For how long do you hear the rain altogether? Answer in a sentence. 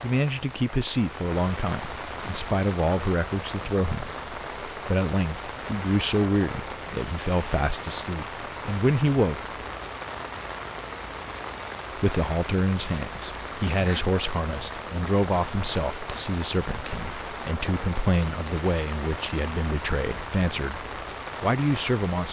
You can hear the rain for 22 seconds altogether.